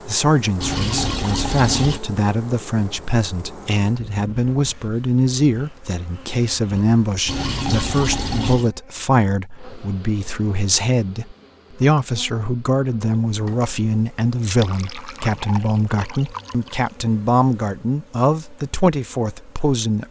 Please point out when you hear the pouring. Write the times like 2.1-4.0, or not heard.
0.6-2.0, 7.2-8.7, 14.4-16.9.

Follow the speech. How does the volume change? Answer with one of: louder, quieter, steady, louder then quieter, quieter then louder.
steady.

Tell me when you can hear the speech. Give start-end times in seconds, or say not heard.
0.1-20.0.